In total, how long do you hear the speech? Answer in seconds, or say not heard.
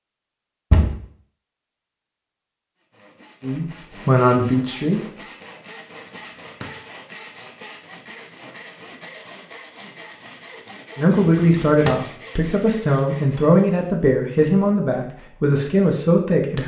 7 s.